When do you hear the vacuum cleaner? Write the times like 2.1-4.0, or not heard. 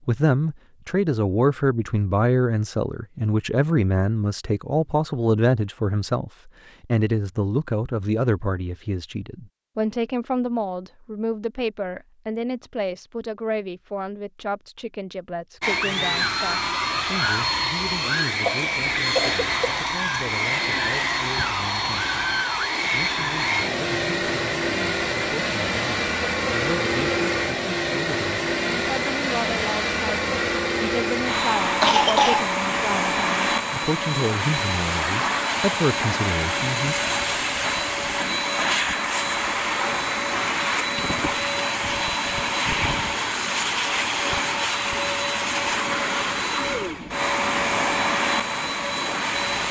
15.6-49.6.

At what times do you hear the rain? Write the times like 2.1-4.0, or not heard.
not heard.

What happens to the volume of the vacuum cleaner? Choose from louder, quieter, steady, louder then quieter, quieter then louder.
steady.